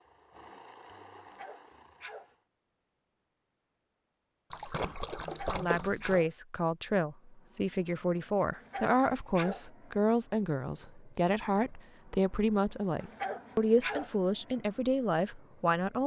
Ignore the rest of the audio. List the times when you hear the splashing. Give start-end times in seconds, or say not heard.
4.5-6.2.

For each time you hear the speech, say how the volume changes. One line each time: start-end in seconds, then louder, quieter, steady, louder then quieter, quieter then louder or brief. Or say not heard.
5.5-16.0 steady.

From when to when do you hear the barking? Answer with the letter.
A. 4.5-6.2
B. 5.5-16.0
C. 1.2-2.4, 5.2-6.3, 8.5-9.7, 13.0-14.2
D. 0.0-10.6
C.